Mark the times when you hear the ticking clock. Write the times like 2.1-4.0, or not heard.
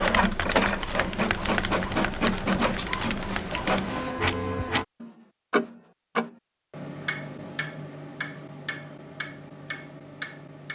0.1-10.7.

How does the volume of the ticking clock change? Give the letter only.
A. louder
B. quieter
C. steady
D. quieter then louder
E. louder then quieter
E.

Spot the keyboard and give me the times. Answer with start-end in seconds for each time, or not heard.
0.0-3.8.